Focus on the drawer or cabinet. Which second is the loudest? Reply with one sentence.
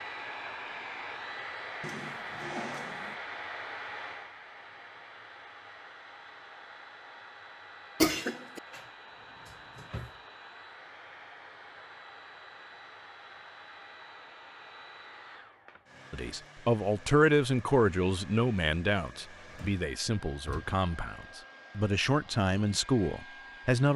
The loudest moment of the drawer or cabinet is at 3 seconds.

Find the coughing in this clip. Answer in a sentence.
You can hear the coughing from 8.0 to 8.6 s.